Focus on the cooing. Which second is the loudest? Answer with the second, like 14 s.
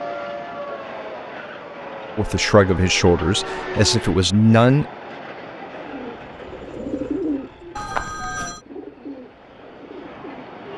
7 s.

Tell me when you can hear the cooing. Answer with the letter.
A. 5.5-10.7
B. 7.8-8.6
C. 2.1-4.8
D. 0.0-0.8
A.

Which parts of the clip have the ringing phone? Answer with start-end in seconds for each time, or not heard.
7.8-8.6.